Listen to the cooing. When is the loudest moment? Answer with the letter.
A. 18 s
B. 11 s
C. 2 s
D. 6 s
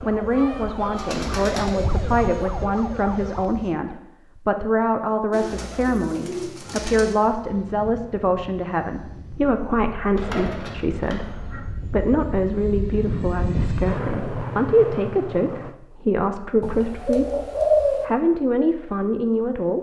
A.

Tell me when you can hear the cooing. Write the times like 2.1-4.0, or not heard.
0.9-1.7, 5.3-7.1, 10.2-11.6, 16.6-18.1.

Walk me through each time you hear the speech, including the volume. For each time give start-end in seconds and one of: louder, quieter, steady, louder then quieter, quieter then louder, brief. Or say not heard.
0.0-19.7 steady.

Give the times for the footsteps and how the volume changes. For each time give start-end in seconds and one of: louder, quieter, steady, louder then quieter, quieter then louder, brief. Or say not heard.
not heard.